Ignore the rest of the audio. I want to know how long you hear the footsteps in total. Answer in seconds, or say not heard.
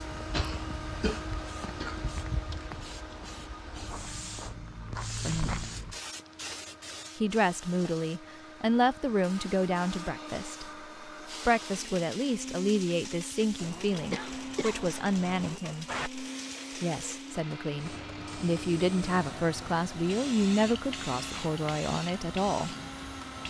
6 s.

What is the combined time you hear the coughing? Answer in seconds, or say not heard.
4 s.